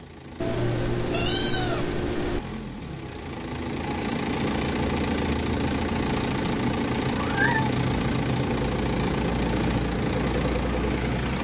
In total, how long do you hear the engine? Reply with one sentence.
You can hear the engine for 11 seconds altogether.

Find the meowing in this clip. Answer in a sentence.
The meowing can be heard from 0.4 to 2.4 s and from 7.1 to 7.8 s.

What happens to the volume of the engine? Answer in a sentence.
The volume of the engine goes up.